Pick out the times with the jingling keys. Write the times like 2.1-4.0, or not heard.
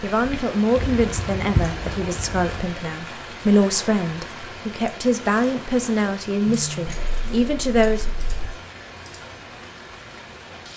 0.8-2.7, 6.5-8.5.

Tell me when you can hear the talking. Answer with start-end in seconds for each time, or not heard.
0.0-8.1.